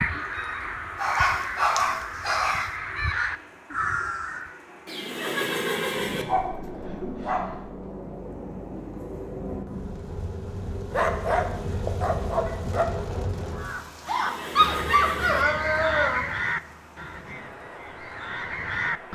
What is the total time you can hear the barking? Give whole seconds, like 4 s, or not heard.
7 s.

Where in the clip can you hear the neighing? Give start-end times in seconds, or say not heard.
4.8-6.2, 14.1-15.4.